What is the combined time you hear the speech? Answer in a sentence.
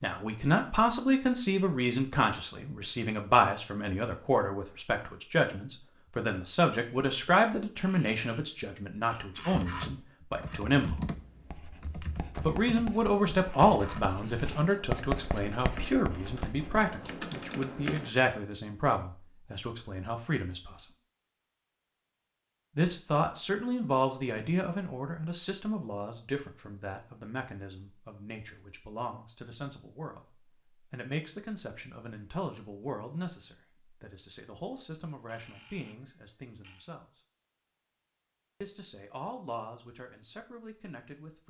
You can hear the speech for 37 seconds altogether.